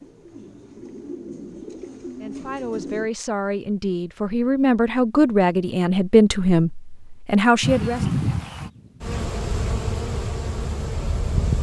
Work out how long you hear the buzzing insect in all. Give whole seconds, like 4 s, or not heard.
4 s.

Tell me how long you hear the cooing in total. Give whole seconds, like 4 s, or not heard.
3 s.